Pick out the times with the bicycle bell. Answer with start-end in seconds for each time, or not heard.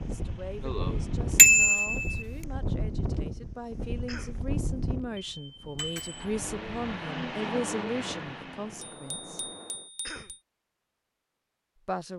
1.4-2.2, 5.3-6.2, 8.9-10.2.